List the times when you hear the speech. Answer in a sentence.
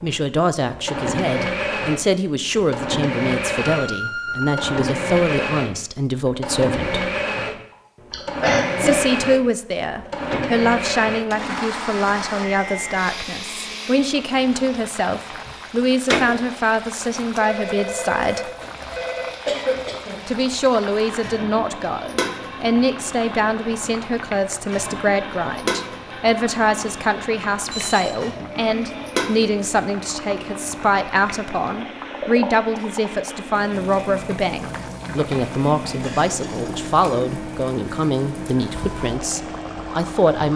You can hear the speech from 0.0 to 7.1 s, from 8.8 to 18.4 s and from 20.2 to 40.5 s.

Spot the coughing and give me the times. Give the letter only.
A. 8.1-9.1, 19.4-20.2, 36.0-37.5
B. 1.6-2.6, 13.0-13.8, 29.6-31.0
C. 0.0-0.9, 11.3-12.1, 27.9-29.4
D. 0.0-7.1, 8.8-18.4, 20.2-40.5
A.